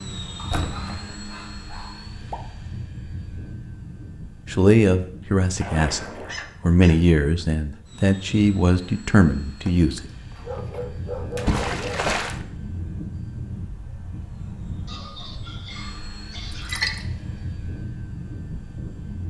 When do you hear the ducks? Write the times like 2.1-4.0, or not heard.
not heard.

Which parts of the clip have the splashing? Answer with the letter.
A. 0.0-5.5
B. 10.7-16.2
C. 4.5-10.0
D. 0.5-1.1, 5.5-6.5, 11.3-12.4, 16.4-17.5
D.